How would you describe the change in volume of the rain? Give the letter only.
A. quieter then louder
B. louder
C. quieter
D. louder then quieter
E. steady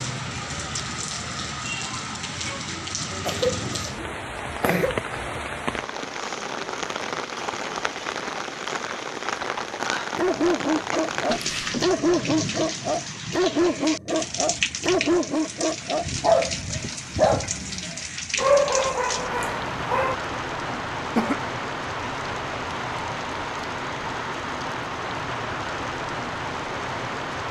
E.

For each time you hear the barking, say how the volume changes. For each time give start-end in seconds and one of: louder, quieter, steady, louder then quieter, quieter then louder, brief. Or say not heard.
10.2-20.2 steady.